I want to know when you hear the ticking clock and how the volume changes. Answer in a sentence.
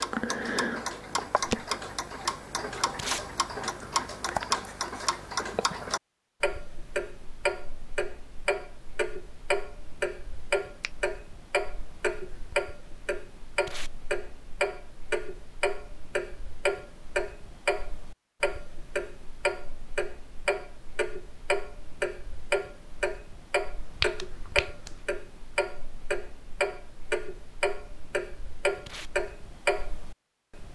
You can hear the ticking clock from 0.0 to 30.7 s, at a steady volume.